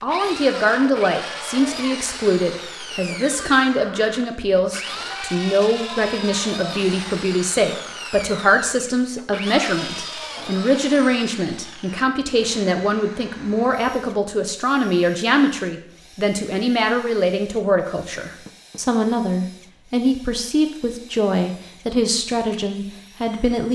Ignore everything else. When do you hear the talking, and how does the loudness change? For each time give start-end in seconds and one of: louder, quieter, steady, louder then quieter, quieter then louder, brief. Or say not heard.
0.0-23.7 steady.